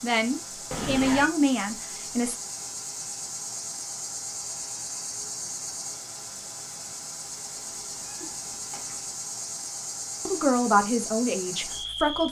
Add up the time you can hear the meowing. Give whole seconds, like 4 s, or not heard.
2 s.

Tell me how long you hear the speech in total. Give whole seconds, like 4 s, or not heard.
4 s.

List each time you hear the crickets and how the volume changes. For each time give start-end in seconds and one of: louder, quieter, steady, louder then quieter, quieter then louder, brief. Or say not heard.
0.0-12.2 steady.